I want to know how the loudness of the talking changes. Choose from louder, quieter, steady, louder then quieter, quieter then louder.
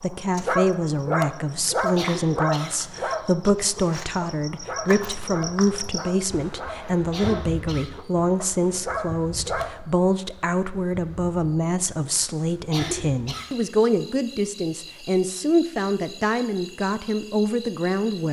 steady.